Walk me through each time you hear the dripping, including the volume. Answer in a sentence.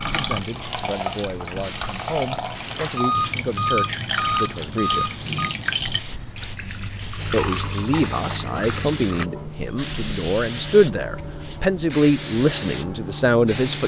The dripping can be heard from 0.0 to 9.3 s, at a steady volume.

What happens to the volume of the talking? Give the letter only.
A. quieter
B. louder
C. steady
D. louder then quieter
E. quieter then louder
B.